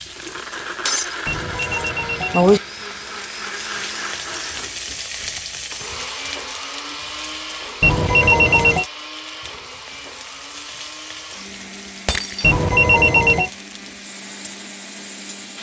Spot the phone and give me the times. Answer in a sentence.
You can hear the phone from 1.2 to 2.6 s, from 7.8 to 8.8 s and from 12.4 to 13.5 s.